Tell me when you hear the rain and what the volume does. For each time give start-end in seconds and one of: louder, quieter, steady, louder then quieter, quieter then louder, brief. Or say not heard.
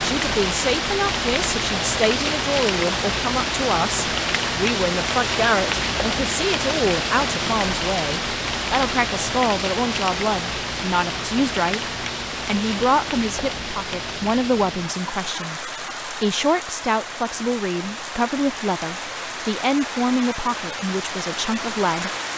0.0-22.3 quieter.